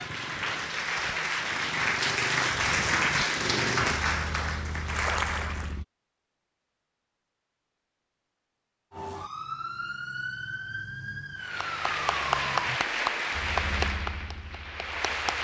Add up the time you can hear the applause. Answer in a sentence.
The applause can be heard for 10 seconds in total.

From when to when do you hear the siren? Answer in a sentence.
The siren can be heard from 8.9 to 12.8 s.